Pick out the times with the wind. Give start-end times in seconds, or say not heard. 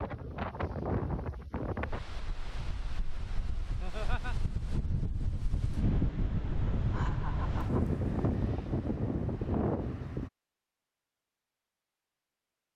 0.0-10.3.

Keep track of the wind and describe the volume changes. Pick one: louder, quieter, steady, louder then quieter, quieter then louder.
quieter then louder.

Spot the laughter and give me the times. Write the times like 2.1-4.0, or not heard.
3.8-4.3, 6.8-7.8.